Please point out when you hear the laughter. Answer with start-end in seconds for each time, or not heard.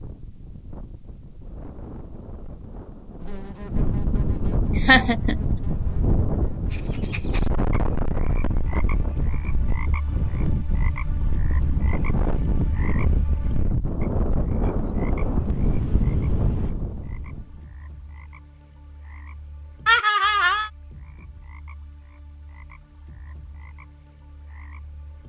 4.8-5.3, 19.9-20.7.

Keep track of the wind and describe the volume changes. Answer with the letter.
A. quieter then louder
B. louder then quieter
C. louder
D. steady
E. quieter
C.